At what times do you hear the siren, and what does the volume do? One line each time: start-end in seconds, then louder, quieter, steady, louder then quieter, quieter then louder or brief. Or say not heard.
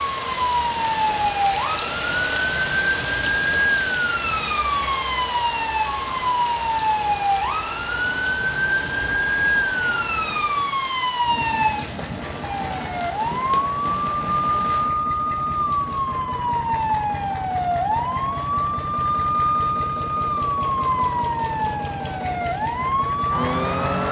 0.0-24.0 steady.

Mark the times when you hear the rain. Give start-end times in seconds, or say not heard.
0.0-14.9.